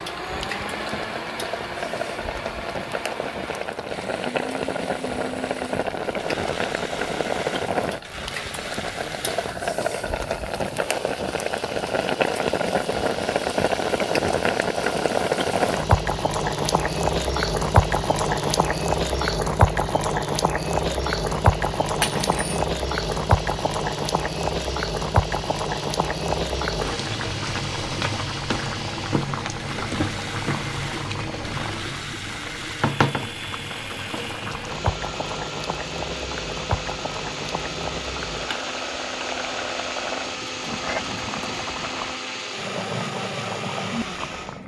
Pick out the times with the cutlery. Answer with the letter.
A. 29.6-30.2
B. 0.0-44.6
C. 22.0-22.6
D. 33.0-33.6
C.